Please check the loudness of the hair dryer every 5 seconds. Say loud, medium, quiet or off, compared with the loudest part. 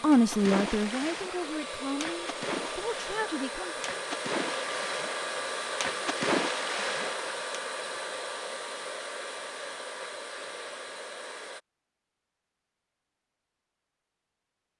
loud, loud, medium.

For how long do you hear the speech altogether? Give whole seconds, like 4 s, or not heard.
4 s.